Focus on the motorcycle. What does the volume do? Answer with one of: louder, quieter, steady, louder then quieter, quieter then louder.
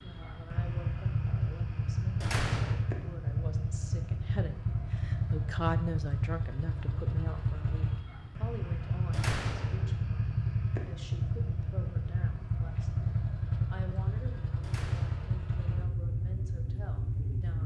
steady.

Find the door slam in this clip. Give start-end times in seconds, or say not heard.
2.2-2.9, 9.1-10.0, 14.6-15.4.